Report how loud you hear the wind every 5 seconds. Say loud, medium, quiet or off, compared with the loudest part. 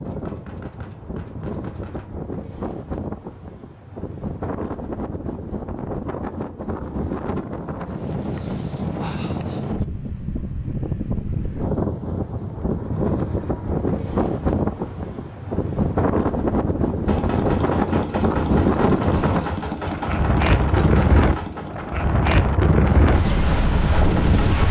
medium, medium, loud, loud, loud.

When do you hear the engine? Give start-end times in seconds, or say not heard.
17.1-24.6.